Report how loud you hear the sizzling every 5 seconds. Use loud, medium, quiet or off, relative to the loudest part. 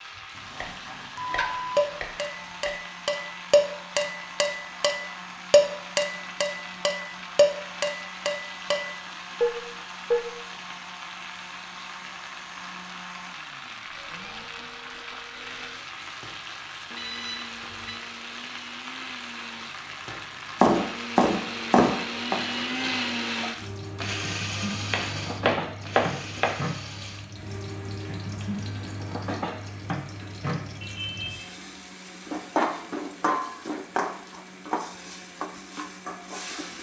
medium, medium, medium, medium, medium, loud, loud, medium.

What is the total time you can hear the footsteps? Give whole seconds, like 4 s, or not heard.
not heard.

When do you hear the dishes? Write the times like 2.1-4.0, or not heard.
1.4-10.3.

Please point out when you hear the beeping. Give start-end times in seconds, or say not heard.
1.1-1.9, 16.9-18.0, 30.8-31.5.